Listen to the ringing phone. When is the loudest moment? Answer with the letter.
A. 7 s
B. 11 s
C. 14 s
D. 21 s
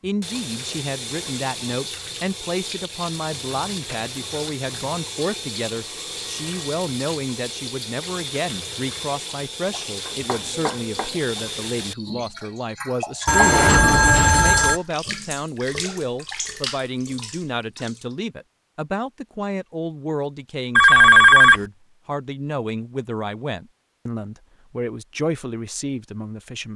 D.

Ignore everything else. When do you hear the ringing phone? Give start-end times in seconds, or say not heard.
5.8-6.7, 13.2-14.8, 20.8-21.6.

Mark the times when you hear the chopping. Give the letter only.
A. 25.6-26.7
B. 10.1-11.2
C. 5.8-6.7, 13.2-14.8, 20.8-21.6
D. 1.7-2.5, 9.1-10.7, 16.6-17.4
B.